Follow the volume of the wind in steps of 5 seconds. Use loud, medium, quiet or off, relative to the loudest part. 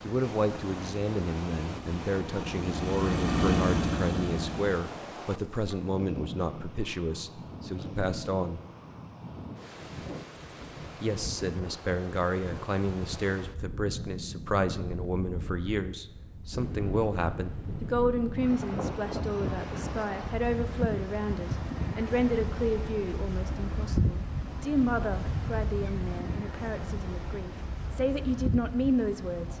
medium, medium, medium, loud, loud, loud.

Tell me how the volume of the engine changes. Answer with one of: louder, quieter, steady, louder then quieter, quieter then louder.
louder.